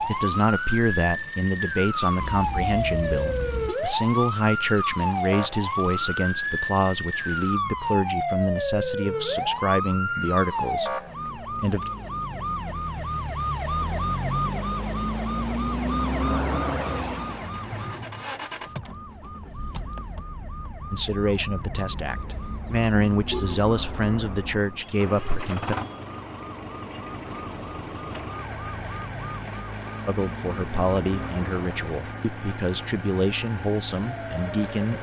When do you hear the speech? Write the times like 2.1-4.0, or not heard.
0.0-11.9, 20.9-25.8, 30.1-34.9.